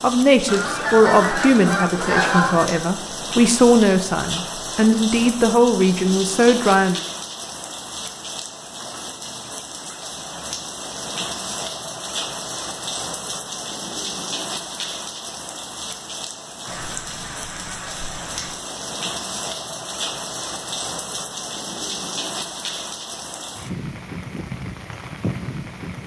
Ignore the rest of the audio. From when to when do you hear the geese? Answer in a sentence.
You can hear the geese from 0.5 to 2.8 s and from 16.6 to 18.6 s.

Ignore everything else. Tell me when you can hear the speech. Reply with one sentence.
You can hear the speech from 0.0 to 7.0 s.